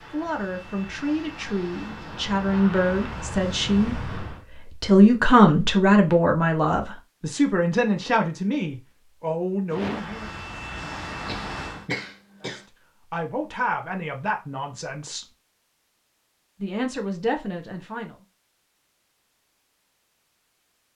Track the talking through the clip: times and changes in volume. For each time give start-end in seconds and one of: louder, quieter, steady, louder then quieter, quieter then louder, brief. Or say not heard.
0.1-10.3 louder then quieter
12.4-15.2 brief
16.6-18.1 brief.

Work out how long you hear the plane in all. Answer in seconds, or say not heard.
7 s.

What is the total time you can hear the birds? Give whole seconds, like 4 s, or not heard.
not heard.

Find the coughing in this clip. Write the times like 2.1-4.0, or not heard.
11.2-12.7.